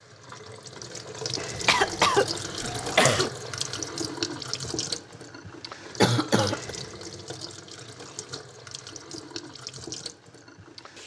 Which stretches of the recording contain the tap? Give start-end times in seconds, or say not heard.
0.0-11.0.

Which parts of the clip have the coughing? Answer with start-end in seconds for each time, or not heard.
1.6-3.3, 6.0-6.8.